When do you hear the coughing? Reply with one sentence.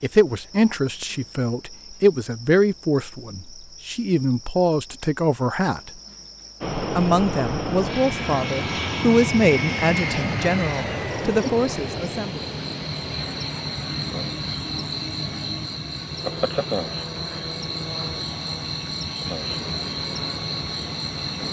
You can't hear the coughing here.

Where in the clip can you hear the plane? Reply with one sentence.
The plane can be heard from 6.6 to 21.4 s.